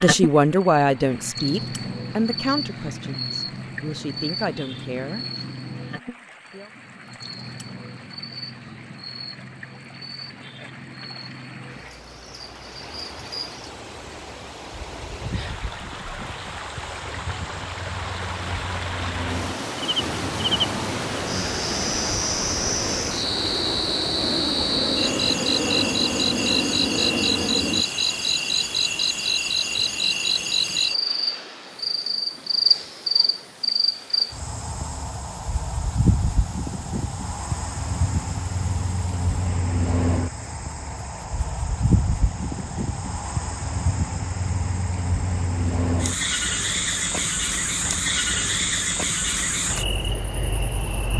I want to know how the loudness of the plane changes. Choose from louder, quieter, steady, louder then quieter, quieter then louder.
louder.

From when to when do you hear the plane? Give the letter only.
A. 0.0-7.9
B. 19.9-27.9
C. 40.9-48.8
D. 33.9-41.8
B.